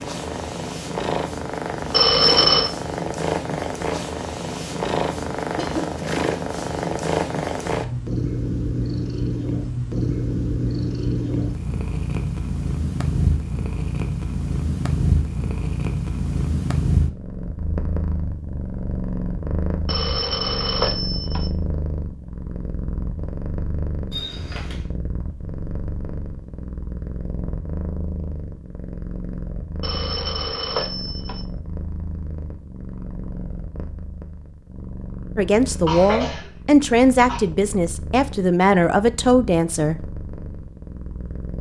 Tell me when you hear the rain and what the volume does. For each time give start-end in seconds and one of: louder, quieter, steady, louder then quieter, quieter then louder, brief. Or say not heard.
not heard.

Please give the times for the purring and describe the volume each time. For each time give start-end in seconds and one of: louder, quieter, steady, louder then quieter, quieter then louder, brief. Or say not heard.
0.0-41.5 quieter.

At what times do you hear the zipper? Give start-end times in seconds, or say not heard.
not heard.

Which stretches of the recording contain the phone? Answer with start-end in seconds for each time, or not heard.
1.9-2.7, 19.9-21.5, 29.8-31.4.